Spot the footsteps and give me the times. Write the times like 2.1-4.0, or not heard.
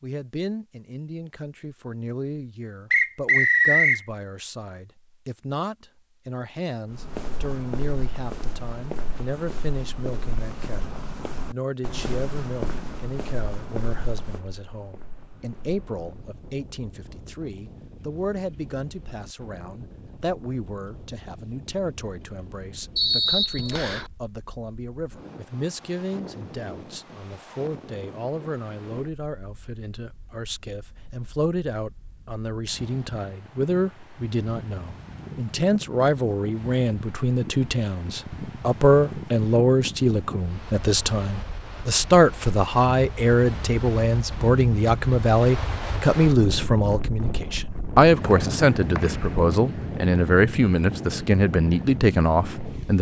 6.9-16.3.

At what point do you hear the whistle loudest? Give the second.
4 s.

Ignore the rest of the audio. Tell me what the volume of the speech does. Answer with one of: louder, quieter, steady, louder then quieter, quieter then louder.
louder.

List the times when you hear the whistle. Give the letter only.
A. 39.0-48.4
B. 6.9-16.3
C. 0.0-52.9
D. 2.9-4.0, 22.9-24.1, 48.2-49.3
D.